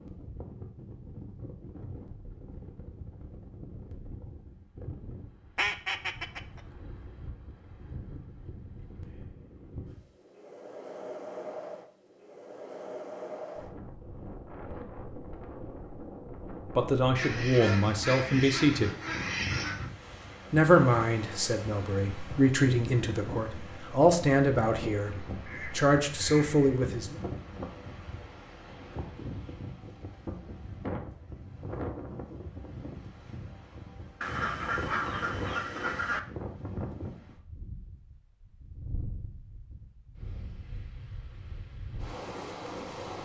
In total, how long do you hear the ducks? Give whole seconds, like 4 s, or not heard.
7 s.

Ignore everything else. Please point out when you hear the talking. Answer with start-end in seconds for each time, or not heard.
16.8-18.9, 20.5-27.1.